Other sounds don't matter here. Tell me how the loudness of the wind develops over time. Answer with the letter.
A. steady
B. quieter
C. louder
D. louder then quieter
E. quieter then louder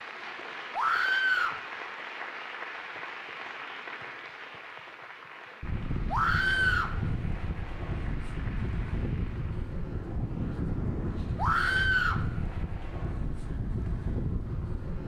A.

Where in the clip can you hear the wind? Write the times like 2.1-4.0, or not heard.
5.6-15.0.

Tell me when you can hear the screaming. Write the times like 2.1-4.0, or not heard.
0.7-1.6, 6.1-7.0, 11.3-12.2.